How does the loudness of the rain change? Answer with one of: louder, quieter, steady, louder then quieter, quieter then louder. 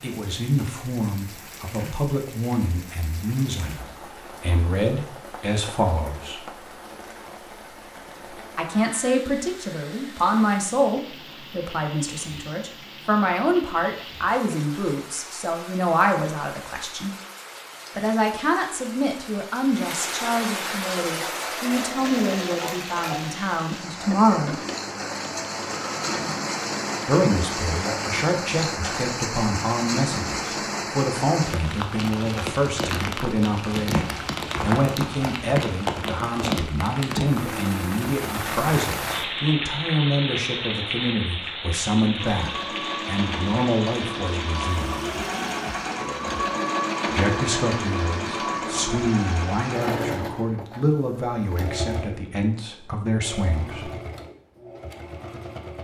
louder.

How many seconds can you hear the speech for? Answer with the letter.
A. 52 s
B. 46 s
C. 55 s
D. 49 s
B.